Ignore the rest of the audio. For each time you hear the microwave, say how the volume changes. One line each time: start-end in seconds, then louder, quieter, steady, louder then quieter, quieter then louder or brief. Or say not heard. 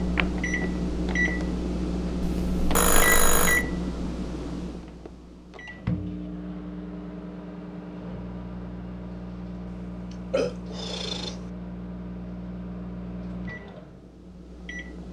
0.0-15.0 quieter.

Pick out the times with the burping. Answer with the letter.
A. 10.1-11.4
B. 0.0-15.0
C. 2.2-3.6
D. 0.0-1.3
A.